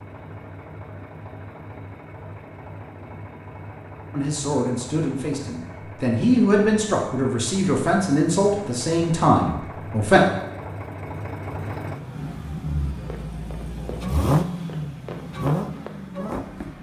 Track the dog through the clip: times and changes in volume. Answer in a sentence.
You can't hear the dog here.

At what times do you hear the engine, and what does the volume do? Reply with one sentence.
You can hear the engine from 0.0 to 16.7 s, getting louder.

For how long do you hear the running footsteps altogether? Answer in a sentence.
You can hear the running footsteps for 4 seconds altogether.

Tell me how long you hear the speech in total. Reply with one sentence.
The speech can be heard for 6 seconds in total.